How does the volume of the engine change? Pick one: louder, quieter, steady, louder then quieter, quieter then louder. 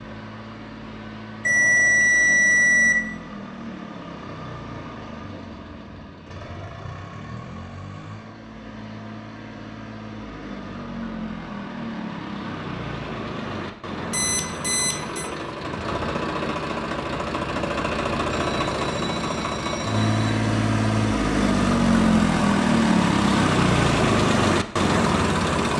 louder.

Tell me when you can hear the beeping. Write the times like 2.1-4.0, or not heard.
1.4-3.0, 14.1-15.3, 18.3-20.2.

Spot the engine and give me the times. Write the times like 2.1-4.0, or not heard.
0.0-25.7.